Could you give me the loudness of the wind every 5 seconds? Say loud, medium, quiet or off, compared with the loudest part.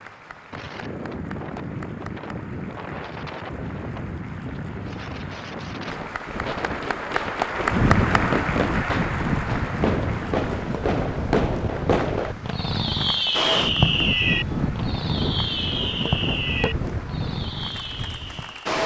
medium, loud, loud, loud.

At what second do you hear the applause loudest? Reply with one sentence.
The volume of the applause peaks at 8 seconds.